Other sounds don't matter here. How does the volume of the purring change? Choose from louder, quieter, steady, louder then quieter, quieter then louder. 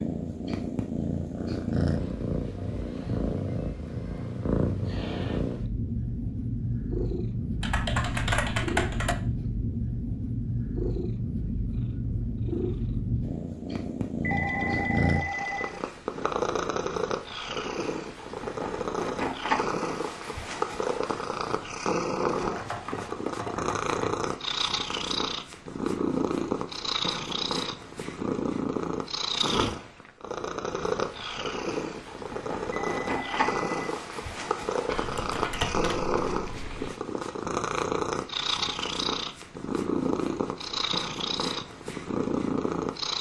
steady.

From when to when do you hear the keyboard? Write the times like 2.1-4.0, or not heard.
7.6-9.2, 22.2-24.3, 34.9-36.9.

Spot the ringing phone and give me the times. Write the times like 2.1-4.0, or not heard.
14.2-15.8, 32.7-33.9.